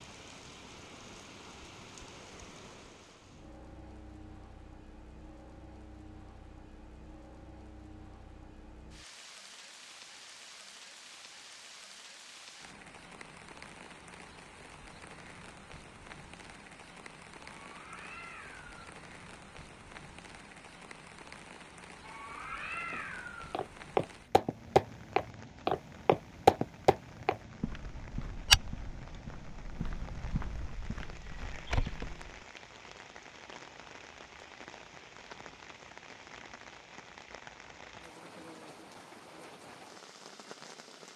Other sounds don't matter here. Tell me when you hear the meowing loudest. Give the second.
23 s.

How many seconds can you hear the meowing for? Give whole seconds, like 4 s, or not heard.
3 s.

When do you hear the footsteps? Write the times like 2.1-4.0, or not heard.
22.9-32.4.